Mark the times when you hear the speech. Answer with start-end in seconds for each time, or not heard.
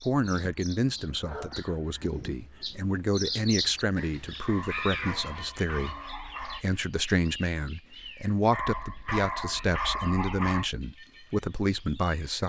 0.0-12.4.